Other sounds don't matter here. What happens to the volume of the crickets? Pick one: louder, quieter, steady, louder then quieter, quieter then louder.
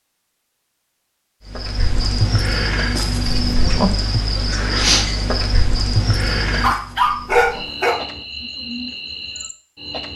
quieter.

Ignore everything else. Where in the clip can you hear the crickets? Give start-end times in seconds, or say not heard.
1.4-10.1.